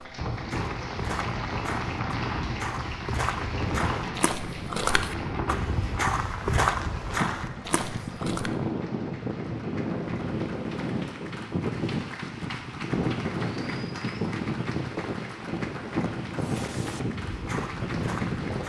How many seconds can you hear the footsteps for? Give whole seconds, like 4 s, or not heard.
11 s.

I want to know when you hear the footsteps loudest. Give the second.
7 s.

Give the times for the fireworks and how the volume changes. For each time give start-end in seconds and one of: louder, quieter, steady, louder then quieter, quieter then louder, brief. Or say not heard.
not heard.